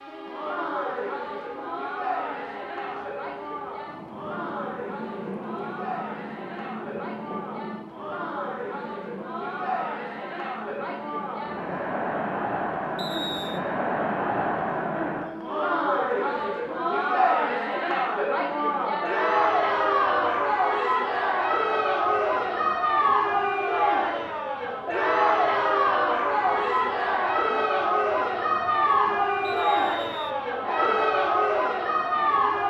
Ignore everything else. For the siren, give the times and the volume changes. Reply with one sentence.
You can't hear the siren here.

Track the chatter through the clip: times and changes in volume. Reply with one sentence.
The chatter can be heard from 0.1 to 32.6 s, getting louder.